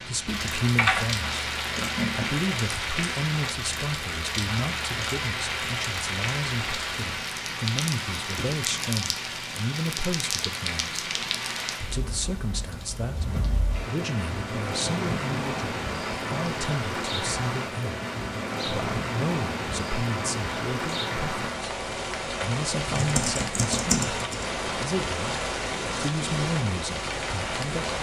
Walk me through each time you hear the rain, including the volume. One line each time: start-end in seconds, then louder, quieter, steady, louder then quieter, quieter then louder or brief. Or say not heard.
0.0-27.9 steady.